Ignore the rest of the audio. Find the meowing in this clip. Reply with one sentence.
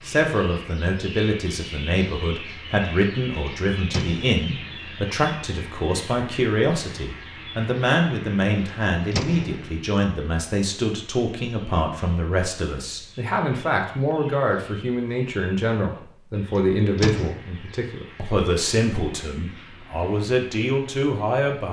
You can't hear the meowing here.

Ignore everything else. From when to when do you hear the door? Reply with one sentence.
The door can be heard from 3.9 to 4.4 s, from 9.1 to 9.7 s and from 16.9 to 17.4 s.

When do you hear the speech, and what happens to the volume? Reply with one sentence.
The speech can be heard from 0.1 to 21.6 s, at a steady volume.